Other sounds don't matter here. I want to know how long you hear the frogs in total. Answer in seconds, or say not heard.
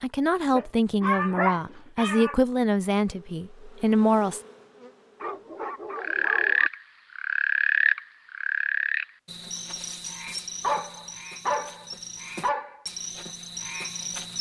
8 s.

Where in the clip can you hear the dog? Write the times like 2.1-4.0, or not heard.
0.5-2.4, 5.2-6.7, 10.6-12.8.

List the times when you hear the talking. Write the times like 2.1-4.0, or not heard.
0.0-4.4.